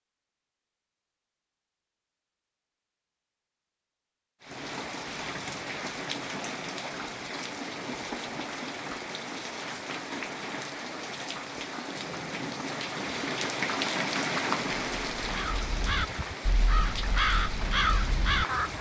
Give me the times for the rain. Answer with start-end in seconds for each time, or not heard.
4.4-18.7.